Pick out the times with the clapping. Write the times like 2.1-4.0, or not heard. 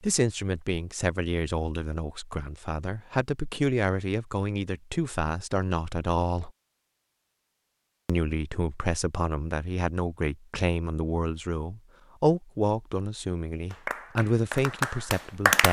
13.7-15.6.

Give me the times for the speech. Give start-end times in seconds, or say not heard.
0.0-6.5, 8.1-15.6.